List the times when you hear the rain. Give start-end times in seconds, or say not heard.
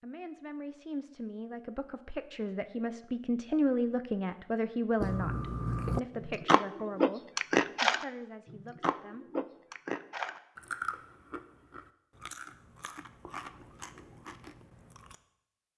not heard.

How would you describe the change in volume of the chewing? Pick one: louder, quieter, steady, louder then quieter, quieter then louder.
quieter.